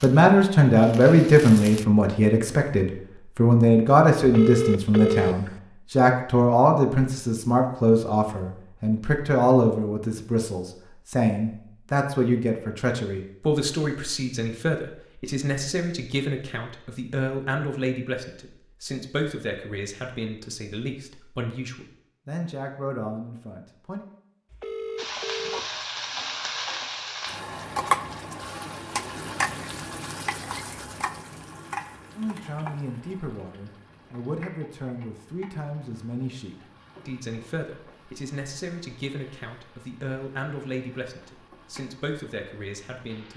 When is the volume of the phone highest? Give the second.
5 s.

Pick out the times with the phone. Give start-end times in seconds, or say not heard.
4.2-5.5, 24.5-25.9.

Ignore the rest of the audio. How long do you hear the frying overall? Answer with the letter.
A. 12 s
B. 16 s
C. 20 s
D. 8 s
C.